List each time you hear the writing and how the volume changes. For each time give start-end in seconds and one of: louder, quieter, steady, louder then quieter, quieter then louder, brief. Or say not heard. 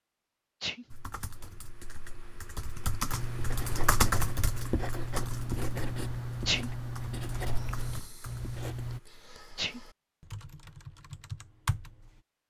0.8-9.0 louder.